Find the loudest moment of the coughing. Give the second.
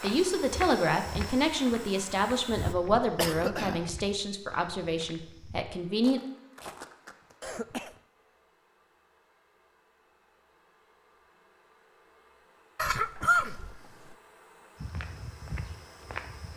13 s.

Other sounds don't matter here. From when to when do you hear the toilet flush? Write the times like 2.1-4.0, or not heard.
not heard.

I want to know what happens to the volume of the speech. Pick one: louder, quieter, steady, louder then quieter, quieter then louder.
quieter.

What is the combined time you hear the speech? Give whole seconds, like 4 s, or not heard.
6 s.